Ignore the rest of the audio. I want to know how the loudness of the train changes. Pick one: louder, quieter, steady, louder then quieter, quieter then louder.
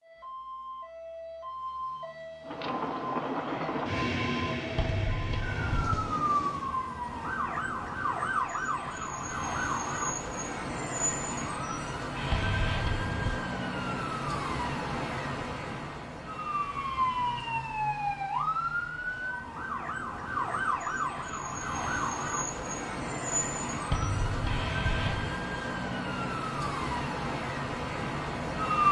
quieter.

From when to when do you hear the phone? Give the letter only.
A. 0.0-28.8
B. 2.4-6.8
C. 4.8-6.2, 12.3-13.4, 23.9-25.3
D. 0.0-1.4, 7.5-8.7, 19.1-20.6
C.